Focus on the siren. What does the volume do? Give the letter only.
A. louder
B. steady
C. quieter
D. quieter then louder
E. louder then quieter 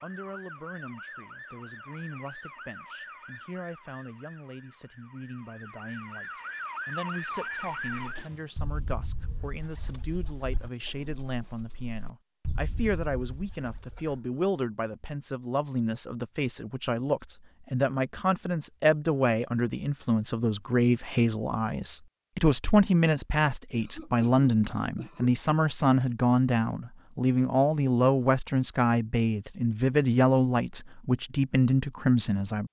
D.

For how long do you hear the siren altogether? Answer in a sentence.
You can hear the siren for 8 seconds altogether.